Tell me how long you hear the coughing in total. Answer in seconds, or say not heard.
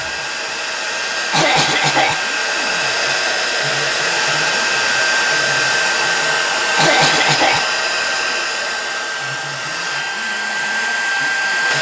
2 s.